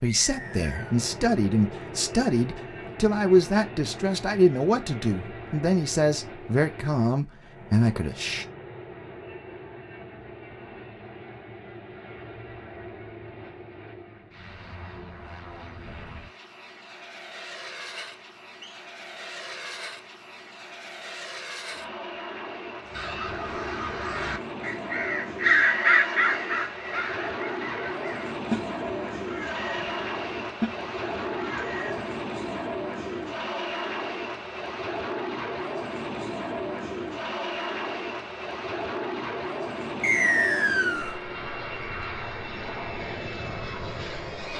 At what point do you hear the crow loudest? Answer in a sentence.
The loudest moment of the crow is at 26 seconds.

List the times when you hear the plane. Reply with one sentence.
You can hear the plane from 0.0 to 44.5 s.